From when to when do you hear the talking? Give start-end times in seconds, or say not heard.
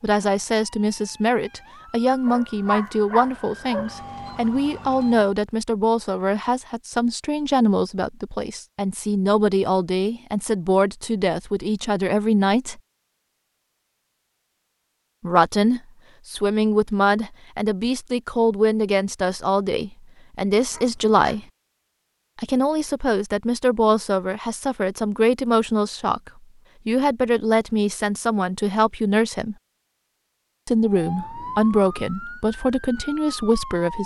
0.0-12.8, 15.2-21.4, 22.4-29.6, 30.6-34.0.